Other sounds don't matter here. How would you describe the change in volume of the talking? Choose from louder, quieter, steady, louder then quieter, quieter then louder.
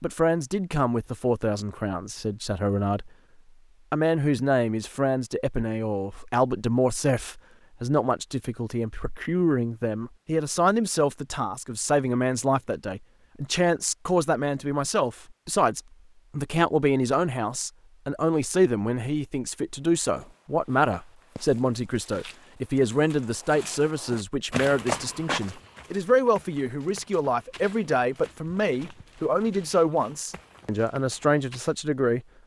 steady.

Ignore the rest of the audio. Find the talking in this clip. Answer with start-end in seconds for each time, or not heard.
0.0-3.1, 3.9-32.2.